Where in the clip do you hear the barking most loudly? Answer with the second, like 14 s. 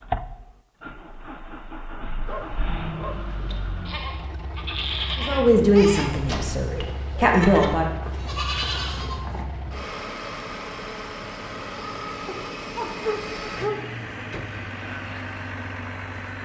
13 s.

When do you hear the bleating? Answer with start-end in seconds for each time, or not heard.
3.9-9.4.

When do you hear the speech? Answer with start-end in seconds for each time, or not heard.
5.2-7.9.